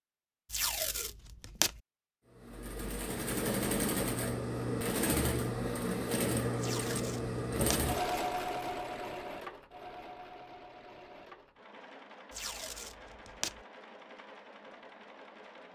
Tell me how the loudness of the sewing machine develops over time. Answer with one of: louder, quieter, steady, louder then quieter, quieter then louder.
quieter.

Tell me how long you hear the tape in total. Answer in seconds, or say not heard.
4 s.